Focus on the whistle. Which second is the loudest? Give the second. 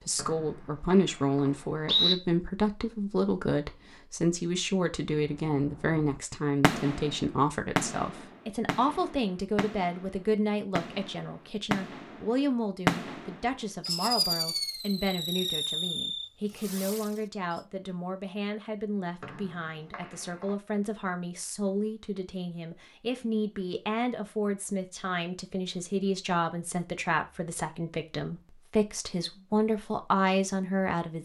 2 s.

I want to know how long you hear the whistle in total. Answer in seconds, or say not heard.
3 s.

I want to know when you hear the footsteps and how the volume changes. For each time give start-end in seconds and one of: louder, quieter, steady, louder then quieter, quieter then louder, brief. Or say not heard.
not heard.